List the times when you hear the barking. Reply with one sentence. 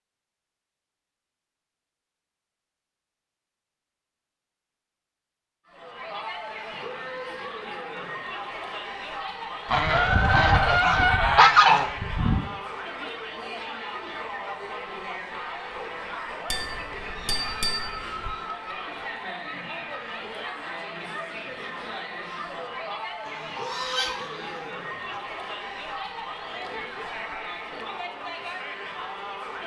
The barking can't be heard in this clip.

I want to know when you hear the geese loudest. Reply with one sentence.
The volume of the geese peaks at 12 seconds.